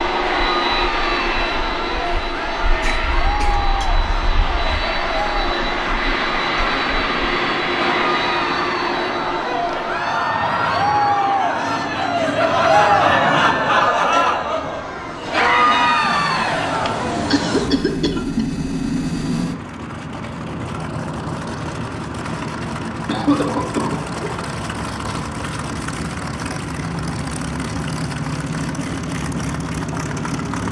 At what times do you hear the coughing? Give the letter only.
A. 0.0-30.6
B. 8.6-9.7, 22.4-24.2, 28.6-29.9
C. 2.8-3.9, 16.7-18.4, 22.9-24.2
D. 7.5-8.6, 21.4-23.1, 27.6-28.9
C.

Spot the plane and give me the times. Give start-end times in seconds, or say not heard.
0.0-30.6.